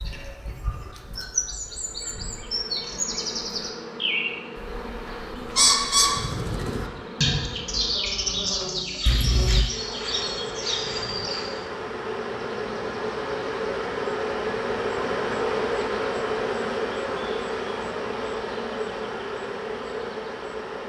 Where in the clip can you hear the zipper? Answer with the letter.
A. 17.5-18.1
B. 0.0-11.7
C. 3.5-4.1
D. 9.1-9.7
D.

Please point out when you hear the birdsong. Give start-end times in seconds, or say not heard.
0.0-11.7.